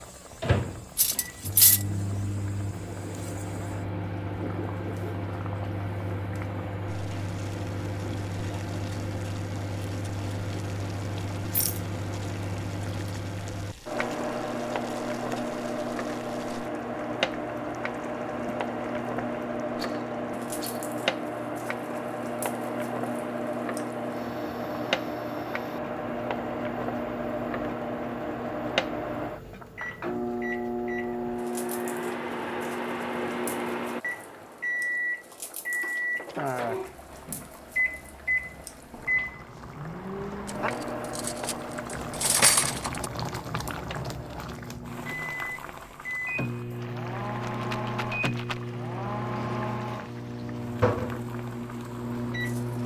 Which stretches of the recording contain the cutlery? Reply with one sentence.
The cutlery can be heard from 0.9 to 1.9 s and from 40.5 to 43.0 s.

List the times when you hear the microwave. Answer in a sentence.
You can hear the microwave from 0.4 to 52.8 s.